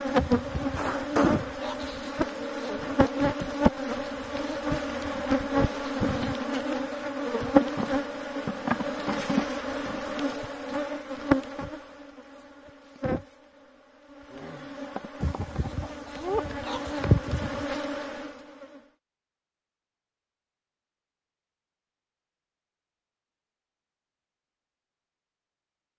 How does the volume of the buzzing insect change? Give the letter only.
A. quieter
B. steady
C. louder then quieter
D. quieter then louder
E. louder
A.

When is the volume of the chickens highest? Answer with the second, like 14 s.
17 s.